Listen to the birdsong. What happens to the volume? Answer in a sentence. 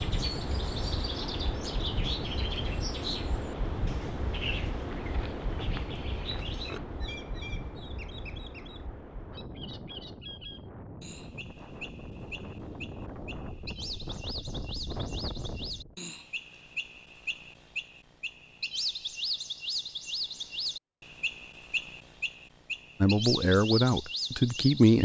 The volume of the birdsong goes down, then up.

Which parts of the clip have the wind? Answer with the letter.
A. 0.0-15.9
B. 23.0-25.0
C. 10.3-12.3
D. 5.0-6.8
A.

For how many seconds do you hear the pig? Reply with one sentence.
You can hear the pig for 2 seconds altogether.